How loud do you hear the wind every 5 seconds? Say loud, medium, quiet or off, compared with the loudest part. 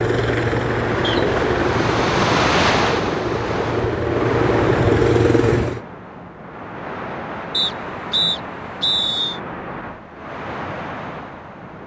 loud, medium, medium.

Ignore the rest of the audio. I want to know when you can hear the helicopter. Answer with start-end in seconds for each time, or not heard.
0.0-5.8.